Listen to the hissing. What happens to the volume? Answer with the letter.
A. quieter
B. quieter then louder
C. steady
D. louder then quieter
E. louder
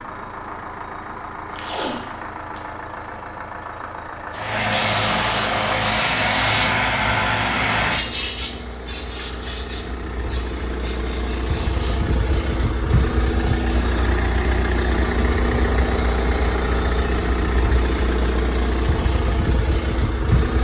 A.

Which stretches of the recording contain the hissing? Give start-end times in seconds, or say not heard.
4.3-12.1.